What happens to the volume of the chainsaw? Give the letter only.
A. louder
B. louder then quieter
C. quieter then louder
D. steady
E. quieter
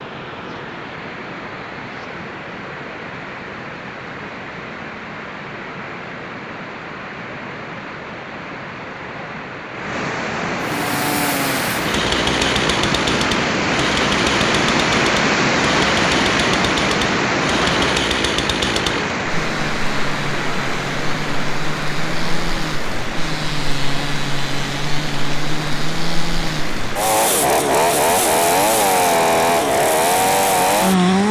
C.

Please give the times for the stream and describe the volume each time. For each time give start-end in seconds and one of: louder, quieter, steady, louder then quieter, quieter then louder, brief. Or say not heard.
0.0-31.2 louder then quieter.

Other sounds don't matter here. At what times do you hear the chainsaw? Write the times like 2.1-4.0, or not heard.
10.7-31.2.